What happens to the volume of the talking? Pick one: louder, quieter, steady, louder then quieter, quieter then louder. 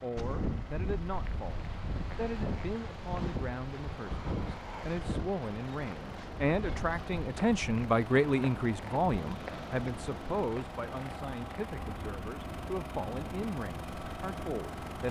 louder then quieter.